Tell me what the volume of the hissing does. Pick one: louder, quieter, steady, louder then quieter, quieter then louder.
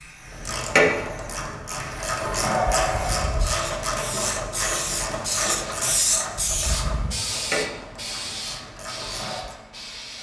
louder then quieter.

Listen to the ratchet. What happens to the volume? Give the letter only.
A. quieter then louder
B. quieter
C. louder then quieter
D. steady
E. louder
B.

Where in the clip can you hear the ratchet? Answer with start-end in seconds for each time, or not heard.
0.2-9.6.